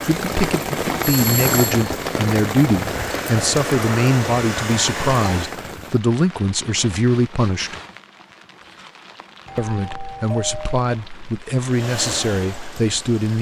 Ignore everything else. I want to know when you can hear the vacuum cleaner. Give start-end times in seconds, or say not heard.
2.8-5.7, 11.6-13.3.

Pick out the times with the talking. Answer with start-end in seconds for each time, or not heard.
0.0-7.8, 9.6-13.3.